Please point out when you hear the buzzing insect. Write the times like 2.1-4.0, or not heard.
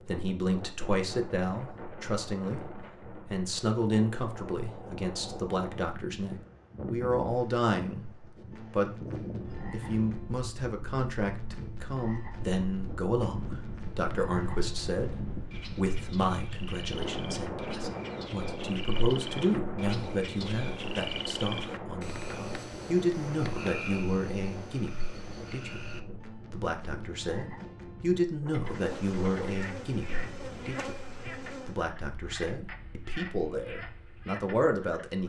28.6-31.8.